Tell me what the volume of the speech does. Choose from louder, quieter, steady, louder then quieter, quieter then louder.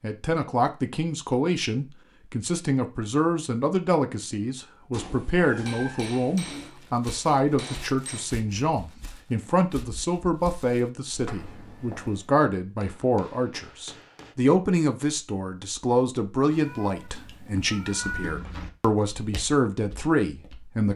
steady.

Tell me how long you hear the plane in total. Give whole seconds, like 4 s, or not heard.
not heard.